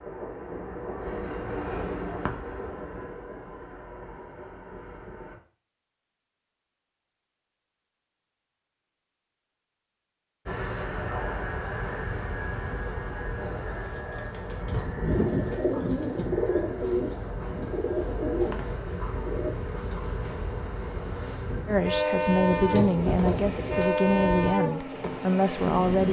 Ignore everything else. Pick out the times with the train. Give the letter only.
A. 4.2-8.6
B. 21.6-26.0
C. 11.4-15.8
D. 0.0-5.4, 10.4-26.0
D.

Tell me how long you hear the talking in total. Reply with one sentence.
The talking can be heard for 4 seconds in total.